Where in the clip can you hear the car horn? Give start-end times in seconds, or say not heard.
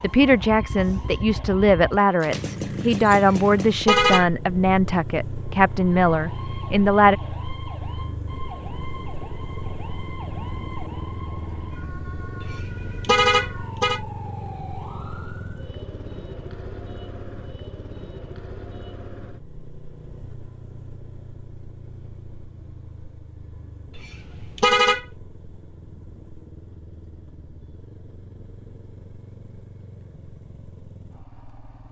3.2-4.3, 12.4-14.0, 23.9-25.1.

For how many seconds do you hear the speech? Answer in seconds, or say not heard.
7 s.